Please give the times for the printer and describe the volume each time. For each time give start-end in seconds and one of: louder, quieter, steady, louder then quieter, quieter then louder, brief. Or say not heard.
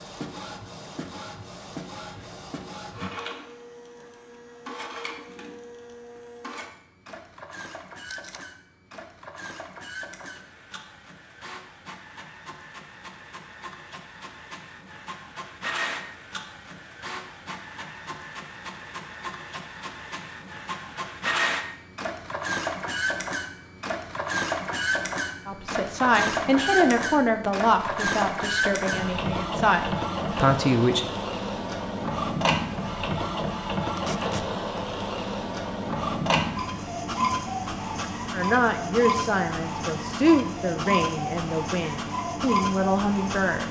0.0-43.6 louder.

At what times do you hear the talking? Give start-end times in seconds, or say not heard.
25.4-31.1, 38.3-43.6.